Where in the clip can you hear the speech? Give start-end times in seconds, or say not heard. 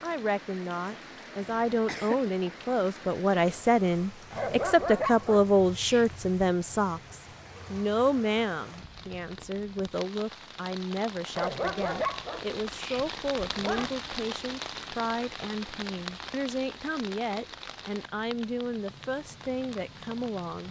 0.0-20.6.